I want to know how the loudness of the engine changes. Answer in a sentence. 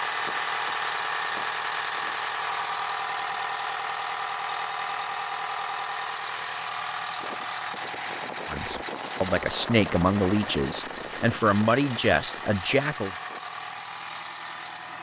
The volume of the engine goes down.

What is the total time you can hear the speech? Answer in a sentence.
You can hear the speech for 5 seconds altogether.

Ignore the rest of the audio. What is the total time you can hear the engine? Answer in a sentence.
You can hear the engine for 15 seconds altogether.